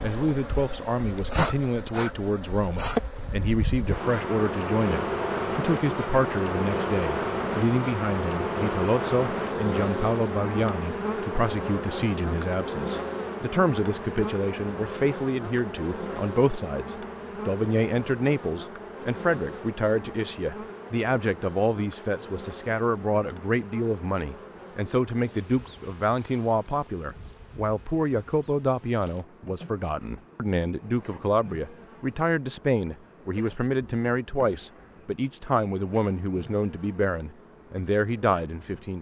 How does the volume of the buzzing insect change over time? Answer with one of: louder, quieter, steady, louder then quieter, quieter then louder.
quieter.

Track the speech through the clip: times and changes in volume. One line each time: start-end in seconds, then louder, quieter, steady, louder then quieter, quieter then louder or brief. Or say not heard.
0.0-38.9 steady.